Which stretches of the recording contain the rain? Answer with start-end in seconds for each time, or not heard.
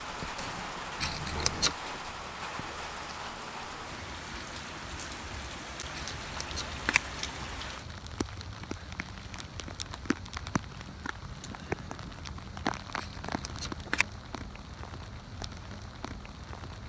0.0-16.8.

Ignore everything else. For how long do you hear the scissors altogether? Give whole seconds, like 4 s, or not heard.
3 s.